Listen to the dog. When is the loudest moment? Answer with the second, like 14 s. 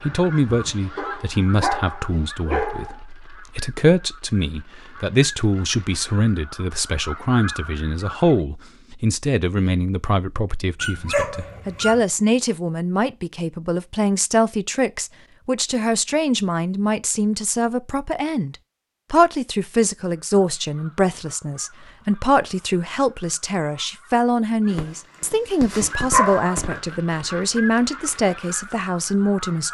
26 s.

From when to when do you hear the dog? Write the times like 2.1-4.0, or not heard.
0.9-3.0, 10.8-12.0, 24.7-26.8.